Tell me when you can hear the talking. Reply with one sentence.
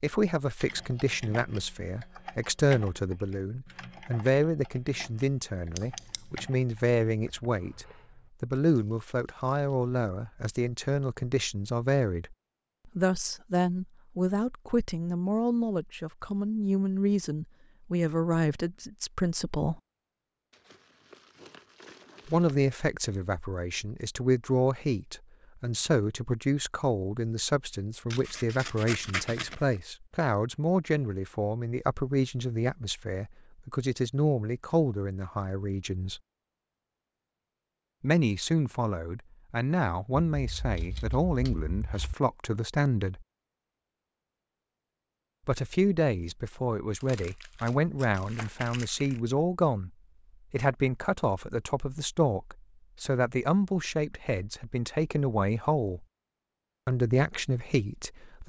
You can hear the talking from 0.0 to 19.8 s, from 22.2 to 36.2 s, from 38.0 to 43.2 s, from 45.5 to 49.9 s, from 50.5 to 56.0 s and from 56.9 to 58.4 s.